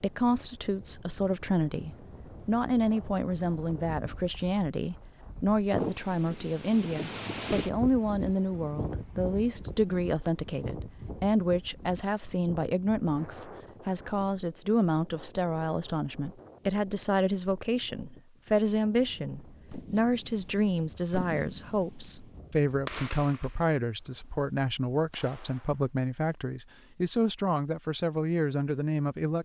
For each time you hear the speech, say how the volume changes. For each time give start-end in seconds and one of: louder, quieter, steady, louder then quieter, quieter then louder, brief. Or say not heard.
0.0-29.4 steady.